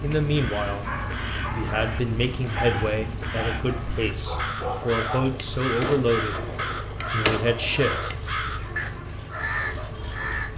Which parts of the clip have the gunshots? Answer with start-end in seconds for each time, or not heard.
4.6-8.2.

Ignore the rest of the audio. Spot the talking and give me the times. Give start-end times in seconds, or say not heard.
0.0-0.8, 1.5-6.5, 7.1-8.1.